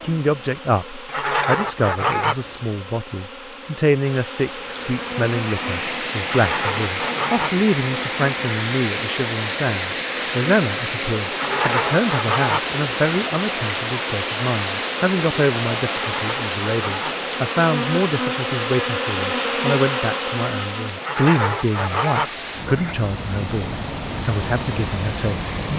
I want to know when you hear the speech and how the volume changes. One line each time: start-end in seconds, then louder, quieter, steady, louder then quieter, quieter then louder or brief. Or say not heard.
0.0-25.7 steady.